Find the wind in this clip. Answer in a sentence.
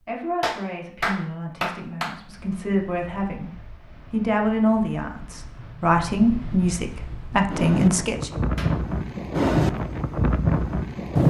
You can hear the wind from 2.1 to 11.2 s.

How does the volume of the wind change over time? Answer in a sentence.
The loudness of the wind goes up.